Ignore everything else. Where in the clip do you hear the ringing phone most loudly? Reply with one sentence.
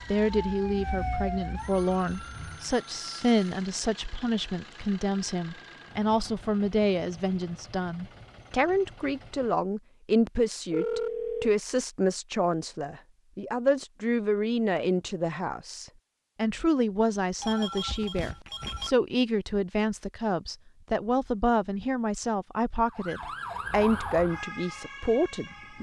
The volume of the ringing phone peaks at 11 seconds.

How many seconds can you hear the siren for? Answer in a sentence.
The siren can be heard for 6 seconds in total.